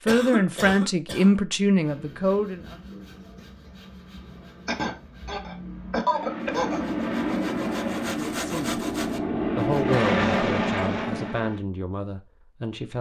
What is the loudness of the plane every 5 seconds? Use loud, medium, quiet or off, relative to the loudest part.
off, loud, loud.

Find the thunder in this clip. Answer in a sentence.
The thunder can't be heard in this clip.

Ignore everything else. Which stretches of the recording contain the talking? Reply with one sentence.
The talking can be heard from 0.0 to 2.8 s, from 8.3 to 8.8 s and from 9.6 to 12.9 s.